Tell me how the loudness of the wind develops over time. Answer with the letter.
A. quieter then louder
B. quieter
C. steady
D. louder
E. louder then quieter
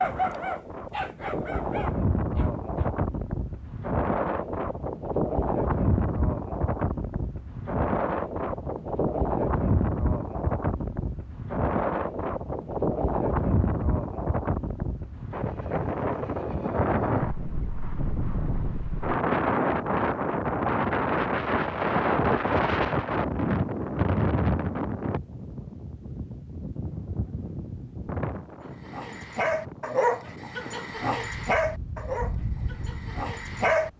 B.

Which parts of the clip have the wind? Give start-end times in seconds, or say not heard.
0.0-33.9.